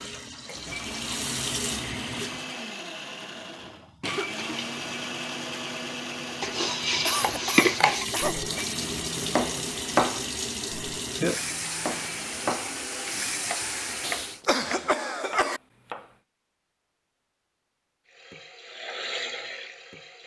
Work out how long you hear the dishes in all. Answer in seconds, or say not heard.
2 s.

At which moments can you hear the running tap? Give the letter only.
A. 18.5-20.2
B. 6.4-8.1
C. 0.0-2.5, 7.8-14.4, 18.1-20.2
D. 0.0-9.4
C.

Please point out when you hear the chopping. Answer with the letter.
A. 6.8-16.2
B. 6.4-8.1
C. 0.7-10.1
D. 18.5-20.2
A.